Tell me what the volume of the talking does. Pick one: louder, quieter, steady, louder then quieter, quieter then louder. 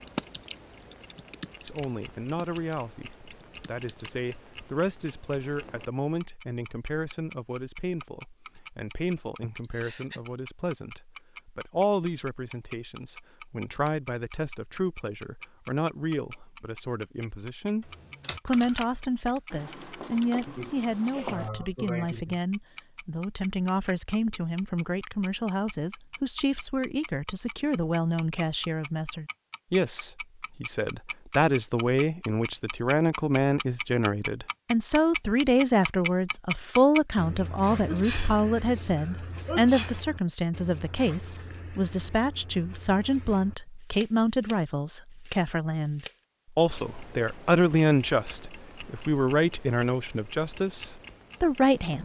louder.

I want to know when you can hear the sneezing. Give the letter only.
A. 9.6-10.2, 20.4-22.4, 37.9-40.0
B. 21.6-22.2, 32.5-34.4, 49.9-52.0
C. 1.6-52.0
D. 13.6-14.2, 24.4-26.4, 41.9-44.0
A.